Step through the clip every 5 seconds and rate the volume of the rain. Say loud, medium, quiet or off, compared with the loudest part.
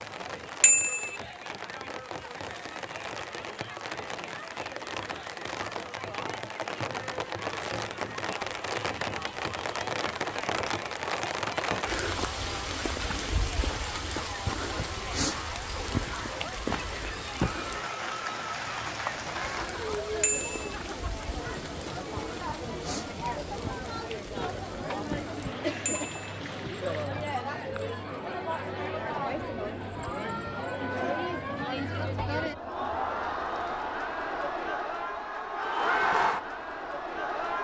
medium, loud, loud, loud, medium, medium, off, off.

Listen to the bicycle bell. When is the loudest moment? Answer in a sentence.
The volume of the bicycle bell peaks at 1 second.